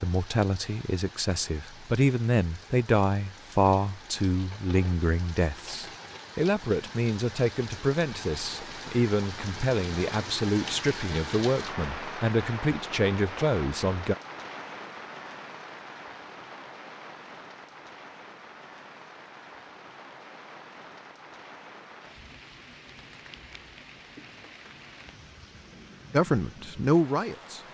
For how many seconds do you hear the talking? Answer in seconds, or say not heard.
16 s.